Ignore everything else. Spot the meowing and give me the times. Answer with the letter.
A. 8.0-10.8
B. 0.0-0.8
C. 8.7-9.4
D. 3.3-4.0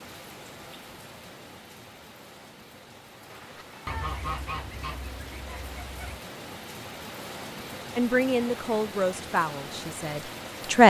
D.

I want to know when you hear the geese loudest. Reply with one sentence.
The loudest moment of the geese is at 4 seconds.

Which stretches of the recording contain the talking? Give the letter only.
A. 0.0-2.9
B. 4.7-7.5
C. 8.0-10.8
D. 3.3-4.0
C.